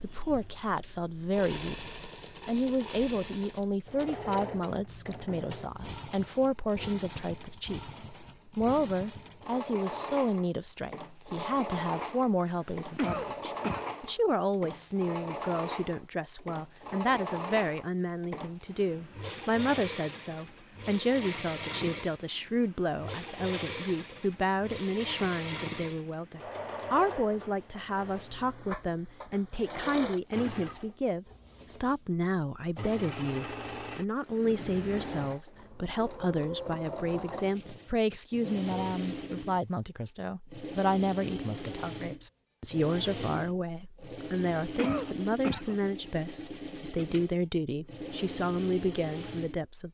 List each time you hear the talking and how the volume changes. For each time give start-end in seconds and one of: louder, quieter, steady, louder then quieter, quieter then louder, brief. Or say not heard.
0.0-49.8 steady.